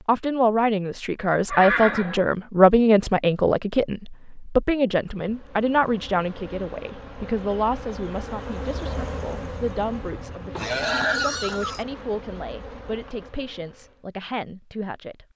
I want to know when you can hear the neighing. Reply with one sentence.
You can hear the neighing from 1.5 to 2.3 s and from 10.6 to 11.8 s.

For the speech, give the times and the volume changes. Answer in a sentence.
You can hear the speech from 0.1 to 15.2 s, getting quieter.